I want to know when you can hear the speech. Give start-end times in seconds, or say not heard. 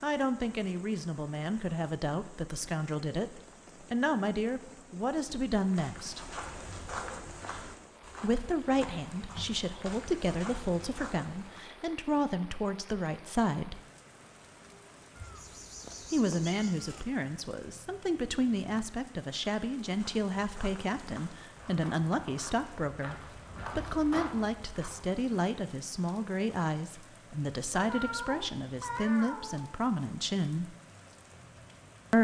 0.0-6.2, 8.2-13.8, 16.1-23.1, 23.8-30.8.